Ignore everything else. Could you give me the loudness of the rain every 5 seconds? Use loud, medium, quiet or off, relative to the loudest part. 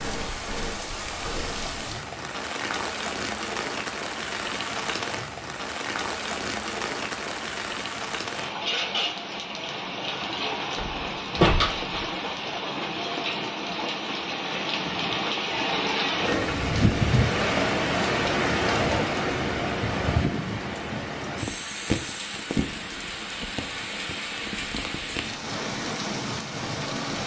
medium, medium, medium, loud, medium, medium.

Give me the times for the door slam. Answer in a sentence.
You can hear the door slam from 10.8 to 12.3 s.